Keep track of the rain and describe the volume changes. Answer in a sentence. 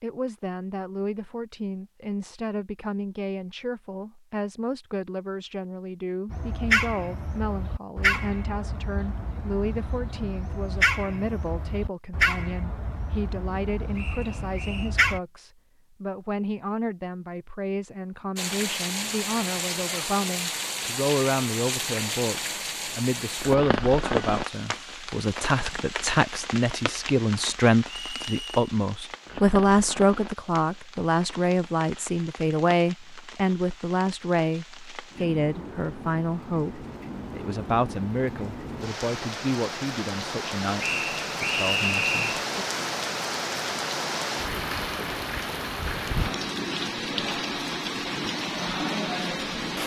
The volume of the rain goes down, then up.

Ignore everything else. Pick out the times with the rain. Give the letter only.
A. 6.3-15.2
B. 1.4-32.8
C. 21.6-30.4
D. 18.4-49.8
D.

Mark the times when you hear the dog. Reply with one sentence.
You can hear the dog from 6.3 to 15.2 s.